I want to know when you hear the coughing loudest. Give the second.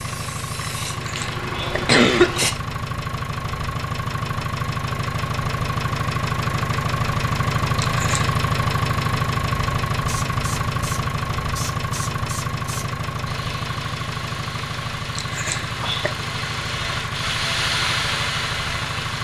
2 s.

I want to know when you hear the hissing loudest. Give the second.
18 s.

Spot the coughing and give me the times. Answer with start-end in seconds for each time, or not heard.
1.1-2.5, 7.8-8.3, 15.2-16.1.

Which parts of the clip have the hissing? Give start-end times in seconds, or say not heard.
0.0-2.5, 10.1-19.1.